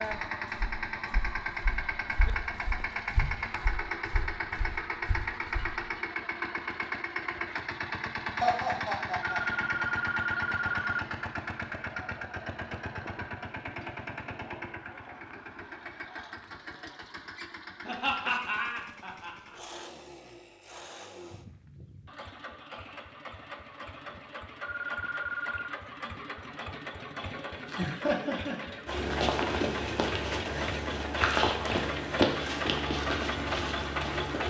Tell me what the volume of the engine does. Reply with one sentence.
The volume of the engine goes down, then up.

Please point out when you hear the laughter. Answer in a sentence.
The laughter can be heard from 8.4 to 9.7 s, from 17.9 to 19.6 s and from 27.6 to 29.1 s.